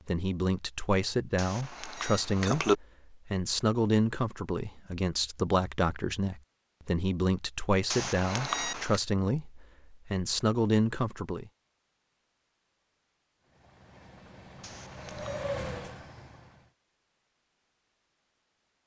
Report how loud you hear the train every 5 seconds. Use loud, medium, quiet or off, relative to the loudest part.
off, off, quiet, loud.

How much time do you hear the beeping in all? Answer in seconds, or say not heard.
3 s.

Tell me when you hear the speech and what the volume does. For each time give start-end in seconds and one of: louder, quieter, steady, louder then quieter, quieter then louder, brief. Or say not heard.
0.1-11.5 steady.